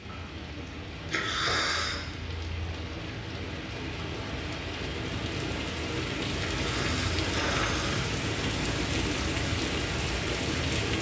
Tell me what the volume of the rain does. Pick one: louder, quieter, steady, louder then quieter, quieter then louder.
louder.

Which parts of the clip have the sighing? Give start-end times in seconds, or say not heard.
1.1-2.0, 6.4-8.2.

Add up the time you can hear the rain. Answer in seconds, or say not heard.
11 s.